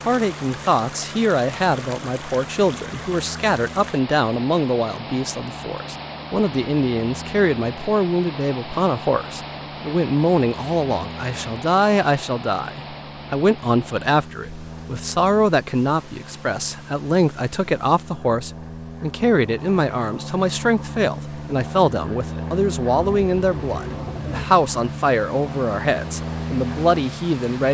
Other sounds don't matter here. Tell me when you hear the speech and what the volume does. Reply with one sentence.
The speech can be heard from 0.1 to 27.6 s, at a steady volume.